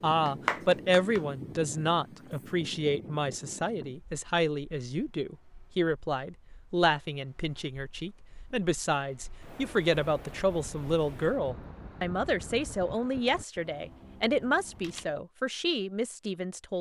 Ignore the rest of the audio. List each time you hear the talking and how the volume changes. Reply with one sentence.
The talking can be heard from 0.0 to 16.7 s, at a steady volume.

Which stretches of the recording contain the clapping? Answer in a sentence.
You can hear the clapping from 0.2 to 1.2 s.